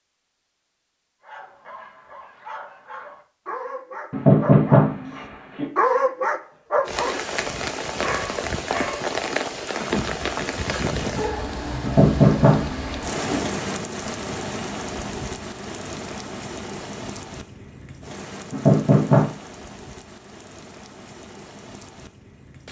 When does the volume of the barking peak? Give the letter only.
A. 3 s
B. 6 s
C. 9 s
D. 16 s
B.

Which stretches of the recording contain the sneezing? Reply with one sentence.
The sneezing can't be heard in this clip.